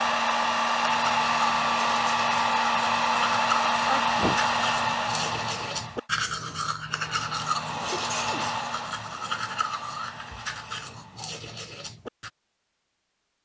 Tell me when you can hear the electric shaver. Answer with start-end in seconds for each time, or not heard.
not heard.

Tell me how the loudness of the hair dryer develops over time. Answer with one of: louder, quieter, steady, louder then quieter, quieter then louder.
quieter.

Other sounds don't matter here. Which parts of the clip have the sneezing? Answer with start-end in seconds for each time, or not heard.
3.9-4.4, 7.9-8.9.